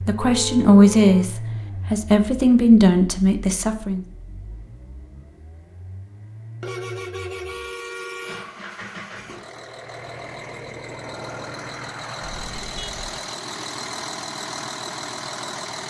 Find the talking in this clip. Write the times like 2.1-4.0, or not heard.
0.1-4.0.